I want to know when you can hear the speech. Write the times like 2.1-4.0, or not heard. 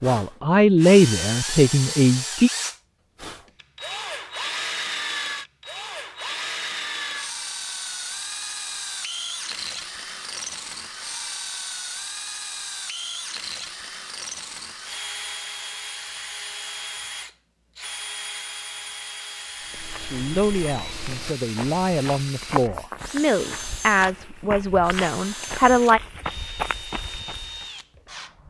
0.0-2.5, 19.9-26.0.